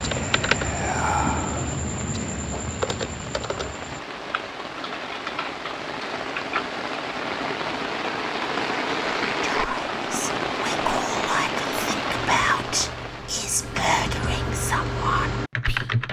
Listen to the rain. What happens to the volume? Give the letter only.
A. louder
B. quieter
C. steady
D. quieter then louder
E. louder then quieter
A.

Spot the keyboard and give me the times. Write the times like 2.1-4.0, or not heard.
0.0-6.7, 12.1-16.0.